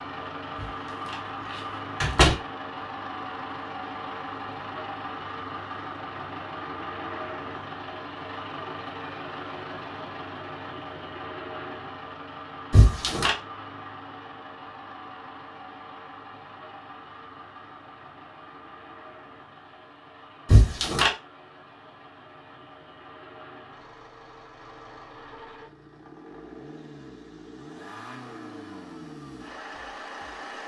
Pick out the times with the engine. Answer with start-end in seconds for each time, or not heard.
0.0-30.6.